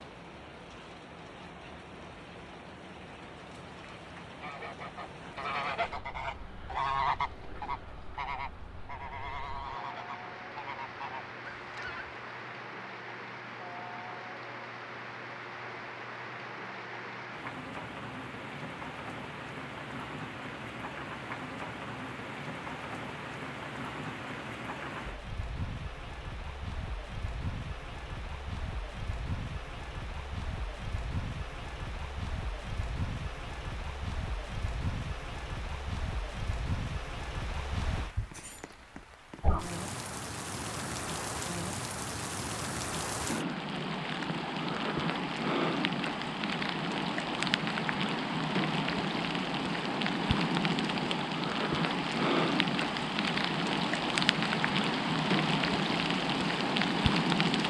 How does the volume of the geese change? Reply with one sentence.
The volume of the geese goes up, then down.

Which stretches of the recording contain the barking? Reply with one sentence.
The barking can't be heard in this clip.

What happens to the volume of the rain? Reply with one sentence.
The loudness of the rain goes up.